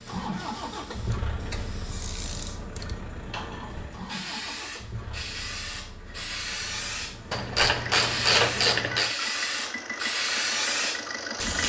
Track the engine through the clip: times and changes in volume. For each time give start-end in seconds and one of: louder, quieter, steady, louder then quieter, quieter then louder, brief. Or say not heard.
0.0-11.6 quieter then louder.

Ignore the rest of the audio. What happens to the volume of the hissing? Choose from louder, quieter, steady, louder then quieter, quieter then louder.
louder.